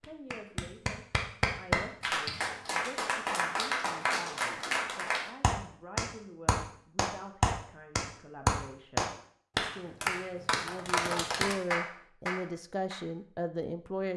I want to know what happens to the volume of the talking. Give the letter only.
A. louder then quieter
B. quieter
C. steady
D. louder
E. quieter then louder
D.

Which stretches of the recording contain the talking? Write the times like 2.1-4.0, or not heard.
0.0-9.1, 9.7-14.1.